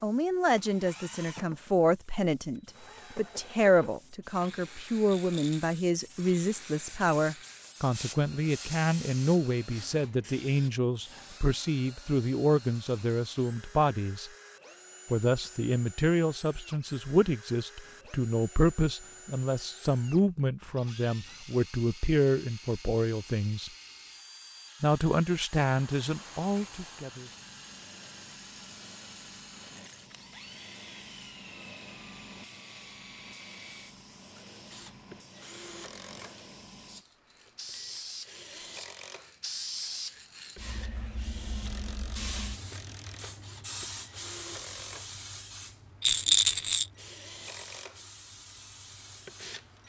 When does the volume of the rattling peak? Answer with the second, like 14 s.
46 s.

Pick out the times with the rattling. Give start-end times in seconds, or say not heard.
5.0-5.7, 46.0-46.9.